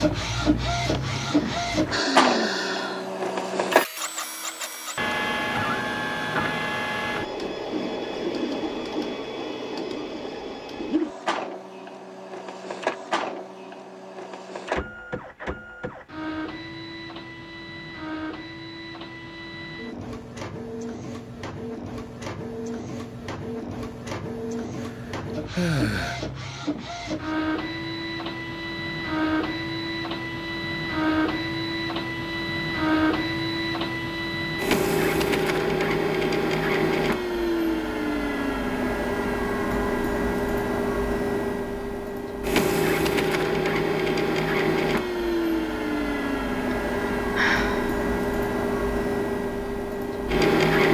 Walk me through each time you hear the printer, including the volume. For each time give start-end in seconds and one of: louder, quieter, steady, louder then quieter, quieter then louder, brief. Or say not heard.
0.0-50.8 quieter then louder.